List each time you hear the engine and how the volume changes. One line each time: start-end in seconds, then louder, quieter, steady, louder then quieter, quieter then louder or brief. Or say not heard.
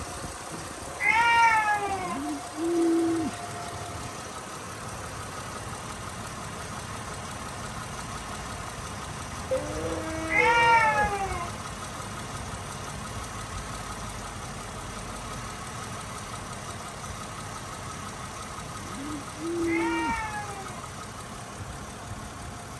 0.0-22.7 steady.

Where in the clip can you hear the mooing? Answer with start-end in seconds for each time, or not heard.
1.9-3.4, 9.5-11.2, 18.7-20.2.